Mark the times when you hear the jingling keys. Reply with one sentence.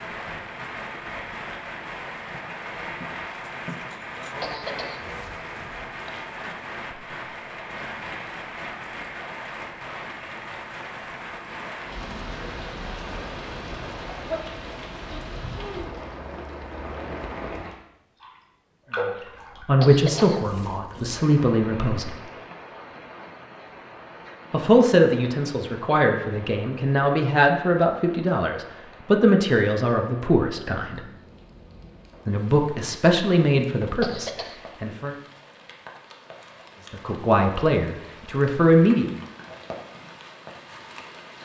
The jingling keys can be heard from 2.3 to 4.3 s.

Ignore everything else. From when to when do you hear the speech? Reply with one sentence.
The speech can be heard from 19.0 to 22.1 s, from 24.5 to 31.0 s, from 32.2 to 35.1 s and from 36.9 to 39.1 s.